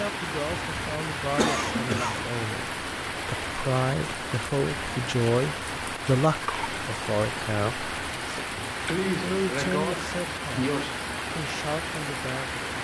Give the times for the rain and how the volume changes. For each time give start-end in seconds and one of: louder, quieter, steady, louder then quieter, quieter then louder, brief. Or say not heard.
0.0-12.7 steady.